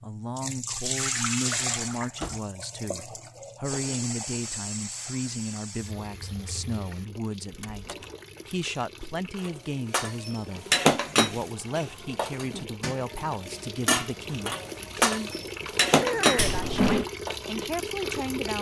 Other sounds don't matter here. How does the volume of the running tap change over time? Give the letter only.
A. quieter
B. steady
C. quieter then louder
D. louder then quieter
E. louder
C.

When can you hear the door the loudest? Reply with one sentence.
The loudest moment of the door is at 17 seconds.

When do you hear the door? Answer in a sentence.
You can hear the door from 1.6 to 2.4 s, from 7.5 to 8.2 s and from 16.4 to 17.1 s.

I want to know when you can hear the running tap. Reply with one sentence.
You can hear the running tap from 0.0 to 18.5 s.